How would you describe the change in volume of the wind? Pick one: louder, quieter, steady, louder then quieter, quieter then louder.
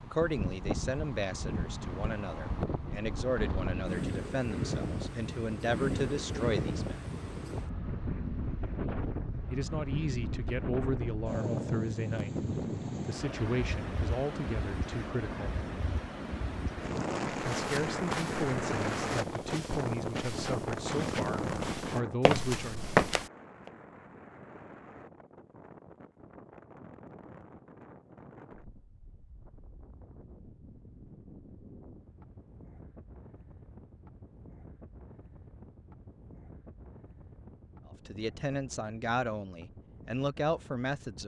quieter.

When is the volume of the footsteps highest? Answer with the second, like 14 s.
23 s.